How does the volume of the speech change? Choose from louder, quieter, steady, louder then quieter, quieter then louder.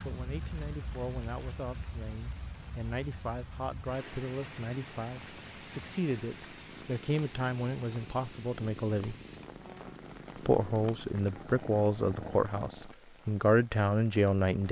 louder.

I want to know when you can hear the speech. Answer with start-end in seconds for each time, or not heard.
0.0-9.2, 10.3-14.6.